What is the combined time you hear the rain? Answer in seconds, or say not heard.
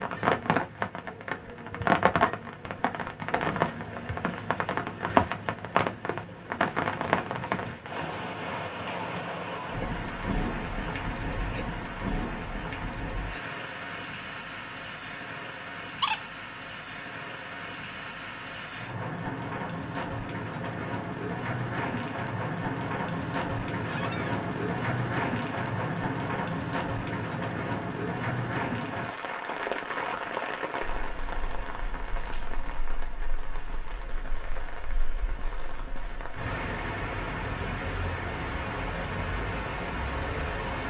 41 s.